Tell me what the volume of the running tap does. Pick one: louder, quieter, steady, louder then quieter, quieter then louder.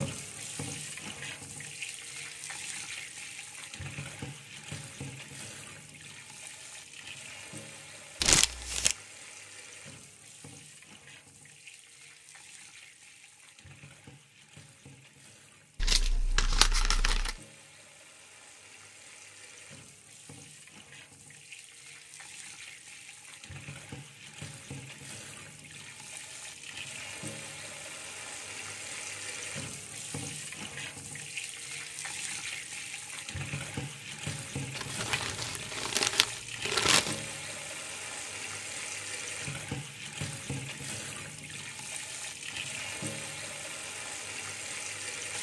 quieter then louder.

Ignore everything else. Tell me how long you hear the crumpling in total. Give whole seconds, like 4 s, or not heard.
5 s.